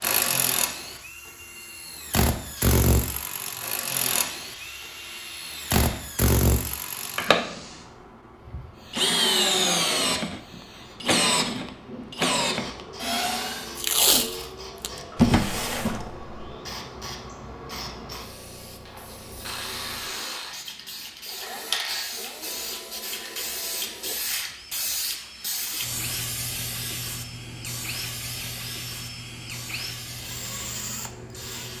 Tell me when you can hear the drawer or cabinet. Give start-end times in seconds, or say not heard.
15.2-16.3.